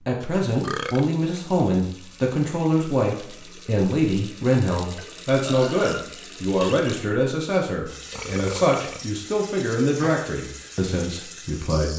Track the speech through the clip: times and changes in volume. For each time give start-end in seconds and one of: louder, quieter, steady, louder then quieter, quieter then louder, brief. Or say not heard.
0.1-11.9 steady.